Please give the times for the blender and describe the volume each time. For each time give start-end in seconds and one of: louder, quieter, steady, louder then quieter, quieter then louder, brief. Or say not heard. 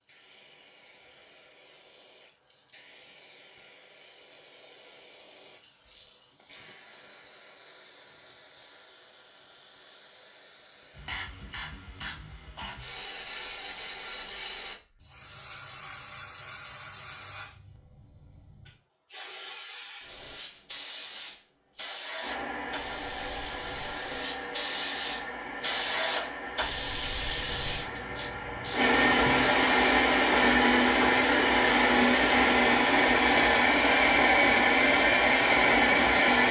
22.2-36.4 louder.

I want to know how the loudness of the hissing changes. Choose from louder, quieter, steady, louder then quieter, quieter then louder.
louder.